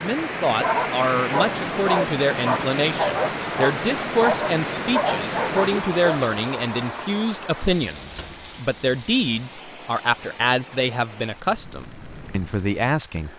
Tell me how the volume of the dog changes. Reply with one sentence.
The loudness of the dog stays about the same.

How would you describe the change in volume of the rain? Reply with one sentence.
The volume of the rain goes down.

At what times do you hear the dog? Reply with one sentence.
You can hear the dog from 0.6 to 6.2 s.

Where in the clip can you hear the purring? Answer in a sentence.
The purring can't be heard in this clip.